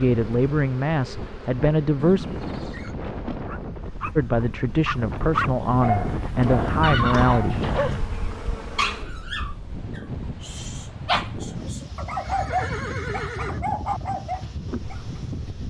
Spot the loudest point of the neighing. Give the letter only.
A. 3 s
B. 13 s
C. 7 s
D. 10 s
C.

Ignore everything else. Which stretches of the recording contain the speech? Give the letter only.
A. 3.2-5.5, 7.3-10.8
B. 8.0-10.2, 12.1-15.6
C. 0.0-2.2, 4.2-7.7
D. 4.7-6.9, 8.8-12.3
C.